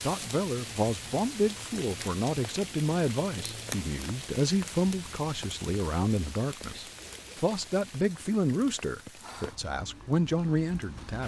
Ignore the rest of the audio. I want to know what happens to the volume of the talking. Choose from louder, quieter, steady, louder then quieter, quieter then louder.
steady.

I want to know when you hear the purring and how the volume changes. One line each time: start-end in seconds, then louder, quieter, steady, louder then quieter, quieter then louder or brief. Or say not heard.
not heard.